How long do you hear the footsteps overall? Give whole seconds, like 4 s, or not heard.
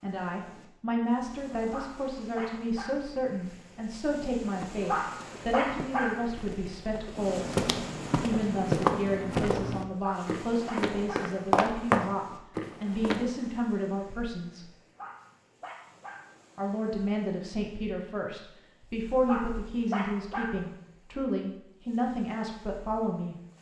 9 s.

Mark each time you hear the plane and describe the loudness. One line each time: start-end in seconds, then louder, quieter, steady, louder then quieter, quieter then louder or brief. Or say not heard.
not heard.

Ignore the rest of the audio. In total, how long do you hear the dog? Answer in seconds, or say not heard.
7 s.